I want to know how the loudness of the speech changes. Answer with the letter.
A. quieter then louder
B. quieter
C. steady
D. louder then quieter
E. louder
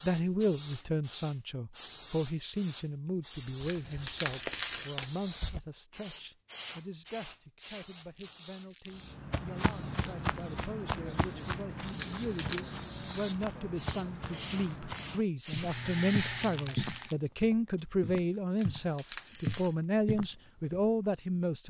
A.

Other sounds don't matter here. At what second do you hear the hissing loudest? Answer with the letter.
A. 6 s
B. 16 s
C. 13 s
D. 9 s
B.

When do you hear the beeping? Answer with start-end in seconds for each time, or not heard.
3.6-5.0, 11.9-12.7, 18.6-19.8.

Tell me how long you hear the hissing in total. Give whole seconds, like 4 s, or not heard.
17 s.